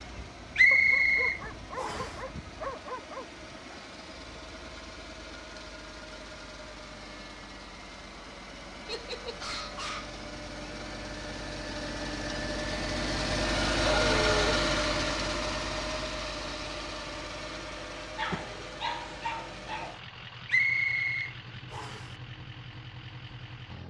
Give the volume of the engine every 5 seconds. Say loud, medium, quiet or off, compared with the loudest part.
quiet, quiet, loud, medium, quiet.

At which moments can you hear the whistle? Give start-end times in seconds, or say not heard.
0.6-2.1, 20.4-22.1.